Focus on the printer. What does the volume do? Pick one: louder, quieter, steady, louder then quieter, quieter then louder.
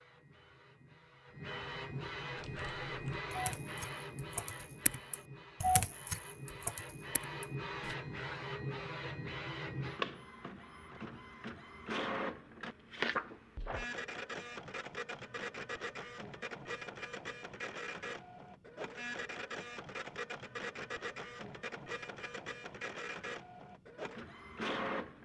steady.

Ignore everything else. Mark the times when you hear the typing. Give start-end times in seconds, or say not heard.
2.4-8.0.